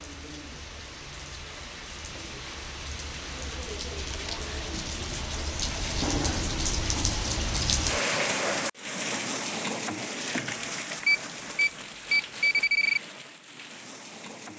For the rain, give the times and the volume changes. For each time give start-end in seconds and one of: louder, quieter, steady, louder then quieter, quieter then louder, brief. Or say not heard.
0.0-14.5 louder then quieter.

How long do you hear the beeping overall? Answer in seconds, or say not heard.
2 s.